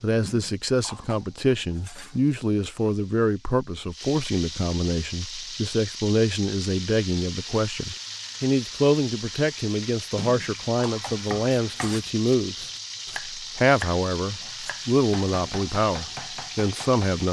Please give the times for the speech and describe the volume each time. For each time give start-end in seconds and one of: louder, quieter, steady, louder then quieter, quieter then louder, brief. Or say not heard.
0.0-17.2 steady.